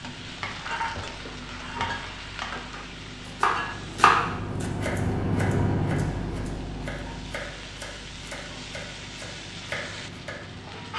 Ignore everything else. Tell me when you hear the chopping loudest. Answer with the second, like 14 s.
4 s.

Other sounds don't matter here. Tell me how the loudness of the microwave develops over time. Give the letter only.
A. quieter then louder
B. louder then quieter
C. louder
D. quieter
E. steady
B.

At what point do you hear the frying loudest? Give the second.
1 s.